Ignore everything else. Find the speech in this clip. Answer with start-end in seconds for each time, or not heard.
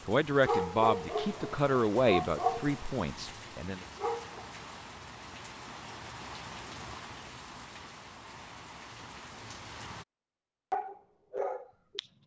0.1-3.8.